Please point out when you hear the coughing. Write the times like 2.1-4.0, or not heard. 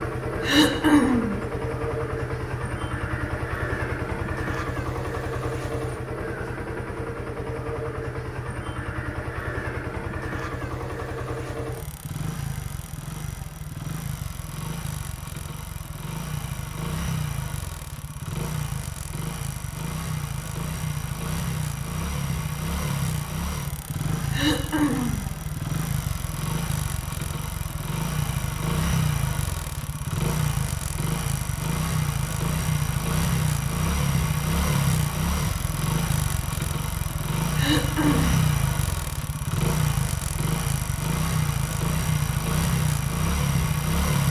0.4-1.4, 24.3-25.2, 37.5-38.4.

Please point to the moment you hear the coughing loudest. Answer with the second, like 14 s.
1 s.